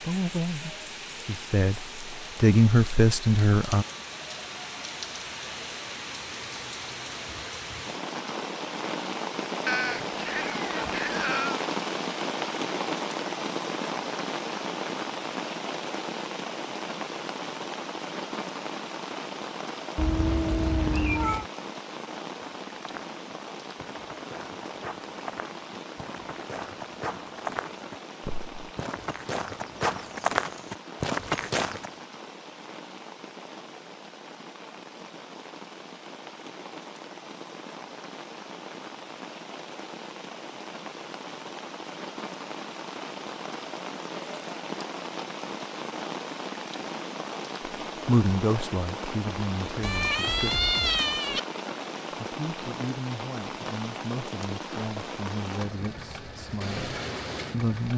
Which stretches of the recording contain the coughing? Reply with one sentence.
You can't hear the coughing here.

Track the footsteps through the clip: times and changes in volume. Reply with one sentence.
You can hear the footsteps from 22.4 to 31.9 s, getting louder.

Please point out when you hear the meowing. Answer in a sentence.
The meowing can be heard from 9.7 to 11.6 s, from 19.9 to 21.4 s and from 49.8 to 51.4 s.